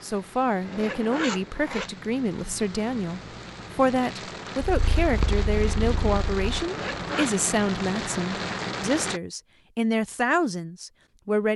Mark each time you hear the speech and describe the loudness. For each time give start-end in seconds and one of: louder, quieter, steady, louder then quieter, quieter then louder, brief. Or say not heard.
0.0-11.5 steady.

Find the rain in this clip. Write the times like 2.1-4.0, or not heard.
0.0-9.2.